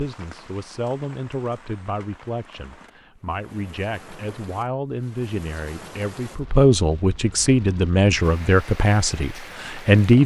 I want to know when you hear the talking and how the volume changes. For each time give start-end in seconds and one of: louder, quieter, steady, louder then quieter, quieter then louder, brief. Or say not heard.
0.0-10.2 louder.